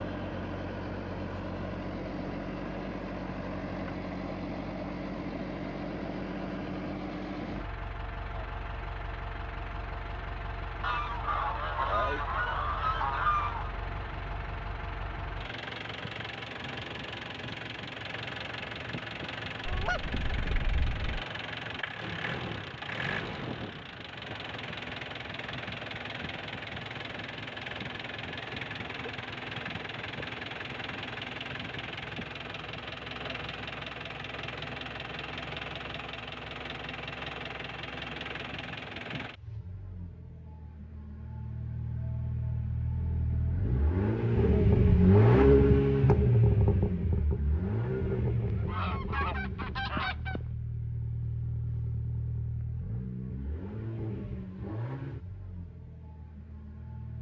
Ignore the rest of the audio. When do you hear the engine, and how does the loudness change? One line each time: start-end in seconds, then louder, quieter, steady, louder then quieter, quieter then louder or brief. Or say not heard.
0.0-57.1 louder.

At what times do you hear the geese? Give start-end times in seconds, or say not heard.
10.8-13.7, 19.6-21.2, 48.5-50.4.